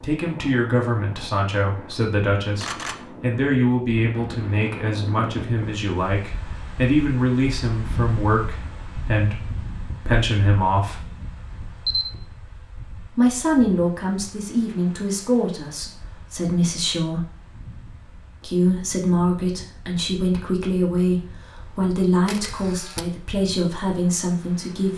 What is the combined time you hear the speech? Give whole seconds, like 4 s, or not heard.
22 s.